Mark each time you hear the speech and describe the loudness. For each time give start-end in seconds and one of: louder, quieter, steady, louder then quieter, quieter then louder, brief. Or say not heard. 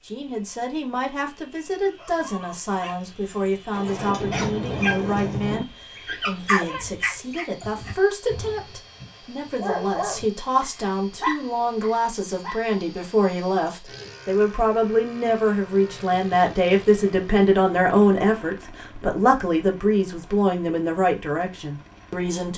0.1-22.5 louder.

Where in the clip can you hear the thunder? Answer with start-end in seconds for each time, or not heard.
3.7-5.7.